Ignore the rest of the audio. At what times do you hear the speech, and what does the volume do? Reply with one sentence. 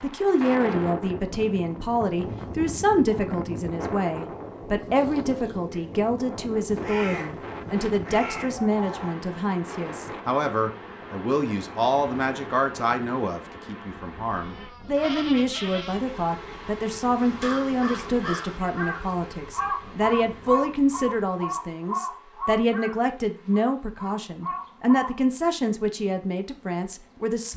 The speech can be heard from 0.0 to 27.5 s, at a steady volume.